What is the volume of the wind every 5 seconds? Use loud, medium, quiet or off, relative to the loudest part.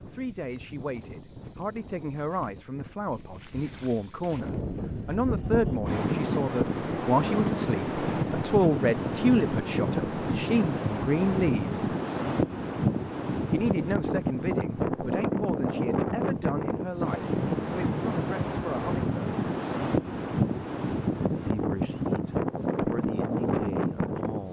quiet, loud, loud, loud, loud.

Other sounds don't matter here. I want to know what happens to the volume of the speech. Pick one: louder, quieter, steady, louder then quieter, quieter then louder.
louder then quieter.